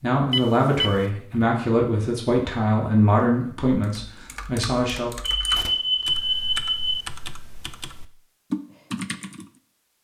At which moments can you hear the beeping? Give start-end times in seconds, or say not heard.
0.3-1.1, 5.2-7.0.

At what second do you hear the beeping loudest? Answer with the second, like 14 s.
6 s.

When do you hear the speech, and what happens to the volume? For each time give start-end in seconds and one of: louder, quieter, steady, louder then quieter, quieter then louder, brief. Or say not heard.
0.0-5.1 quieter.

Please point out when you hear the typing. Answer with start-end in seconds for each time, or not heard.
3.7-9.5.